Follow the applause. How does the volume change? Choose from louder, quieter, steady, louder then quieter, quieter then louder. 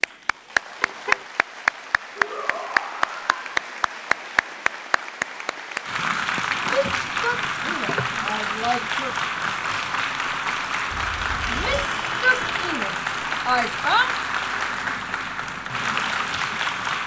steady.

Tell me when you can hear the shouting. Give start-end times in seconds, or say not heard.
2.1-3.4, 6.7-9.2, 11.5-14.2.